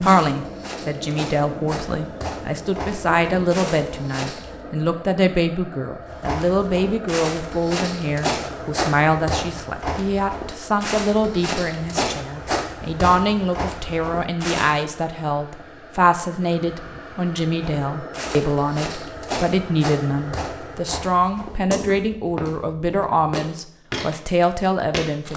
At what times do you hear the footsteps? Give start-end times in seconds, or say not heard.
0.0-4.5, 6.0-14.8, 17.6-25.3.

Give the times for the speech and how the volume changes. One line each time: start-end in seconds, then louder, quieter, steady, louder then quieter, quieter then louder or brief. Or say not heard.
0.0-25.3 steady.